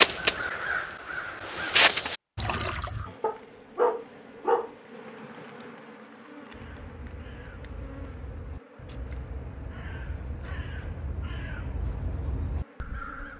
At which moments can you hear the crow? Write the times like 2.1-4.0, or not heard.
0.0-3.1, 6.5-13.3.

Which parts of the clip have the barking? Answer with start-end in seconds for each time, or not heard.
3.2-4.7.